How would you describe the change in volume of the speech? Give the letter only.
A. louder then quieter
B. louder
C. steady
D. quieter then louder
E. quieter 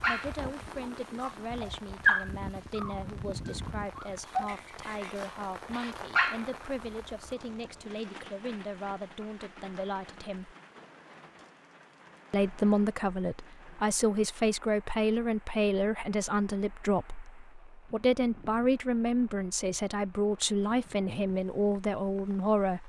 B.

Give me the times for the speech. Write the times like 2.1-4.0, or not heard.
0.1-10.6, 12.3-22.8.